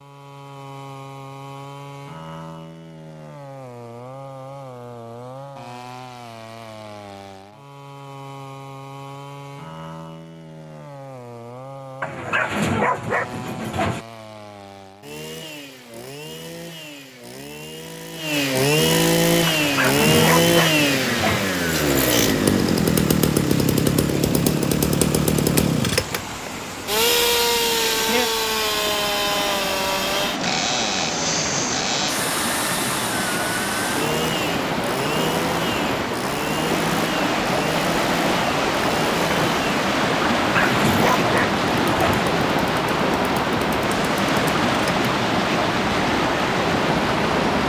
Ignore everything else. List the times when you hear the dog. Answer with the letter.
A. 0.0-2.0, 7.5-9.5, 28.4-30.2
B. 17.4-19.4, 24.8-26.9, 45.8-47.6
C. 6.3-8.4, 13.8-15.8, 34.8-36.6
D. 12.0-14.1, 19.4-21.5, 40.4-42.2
D.